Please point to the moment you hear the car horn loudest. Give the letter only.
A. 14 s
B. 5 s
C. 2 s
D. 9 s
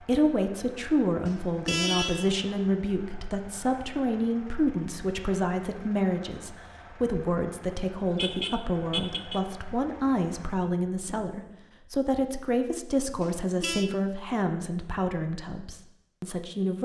C.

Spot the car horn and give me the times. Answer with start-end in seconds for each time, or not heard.
1.2-2.4, 8.2-9.4, 13.2-13.9.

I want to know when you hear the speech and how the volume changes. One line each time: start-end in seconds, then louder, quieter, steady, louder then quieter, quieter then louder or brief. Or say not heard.
0.0-16.8 steady.